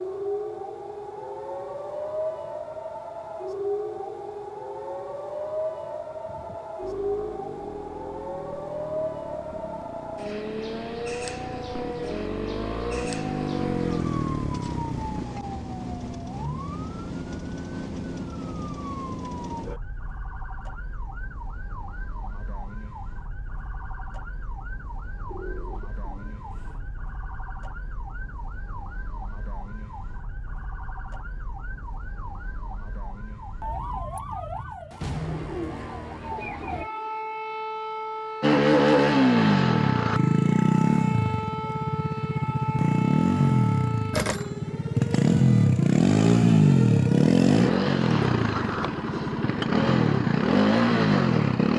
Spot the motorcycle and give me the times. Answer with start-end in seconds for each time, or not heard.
6.8-15.2, 38.4-51.7.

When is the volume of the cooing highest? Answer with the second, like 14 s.
36 s.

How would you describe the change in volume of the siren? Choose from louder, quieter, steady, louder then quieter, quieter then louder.
quieter then louder.